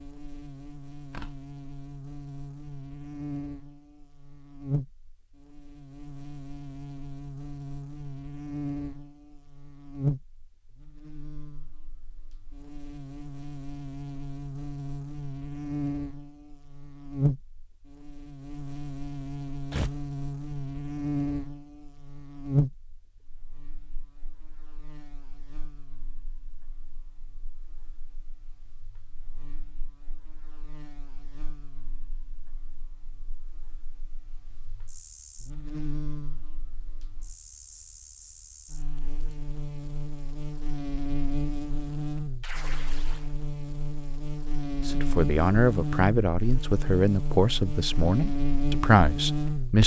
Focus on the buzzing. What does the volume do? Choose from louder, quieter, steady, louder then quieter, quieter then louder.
quieter then louder.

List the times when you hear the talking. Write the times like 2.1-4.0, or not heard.
44.9-49.8.